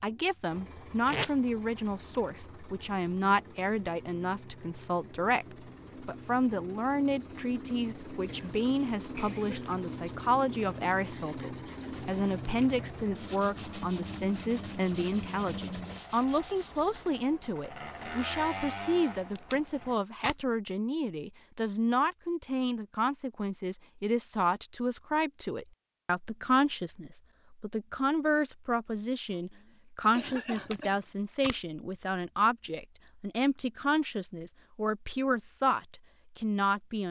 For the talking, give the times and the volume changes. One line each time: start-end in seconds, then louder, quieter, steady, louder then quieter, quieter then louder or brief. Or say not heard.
0.0-37.0 steady.